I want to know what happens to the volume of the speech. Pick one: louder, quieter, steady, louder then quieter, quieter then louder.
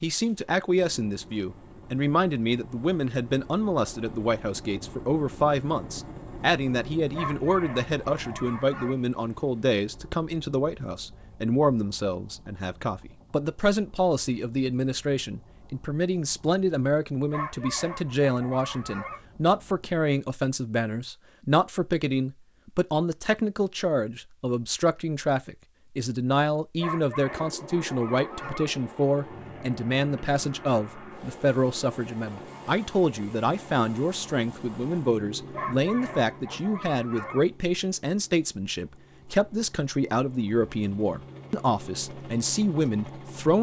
steady.